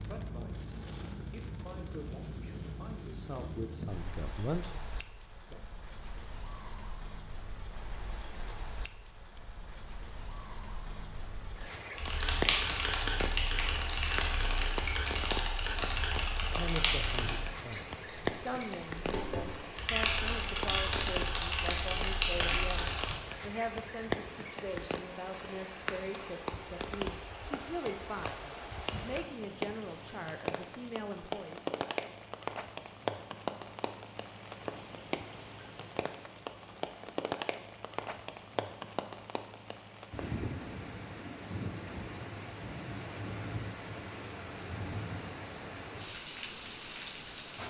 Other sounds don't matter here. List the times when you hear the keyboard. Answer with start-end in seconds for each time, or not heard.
11.9-23.2.